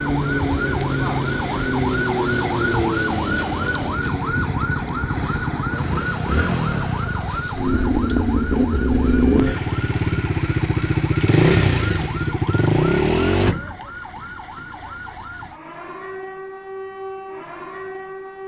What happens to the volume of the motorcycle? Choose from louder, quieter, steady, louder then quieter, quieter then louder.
louder.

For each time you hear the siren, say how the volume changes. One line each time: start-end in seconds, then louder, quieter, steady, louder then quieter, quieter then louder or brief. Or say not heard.
0.0-18.4 quieter.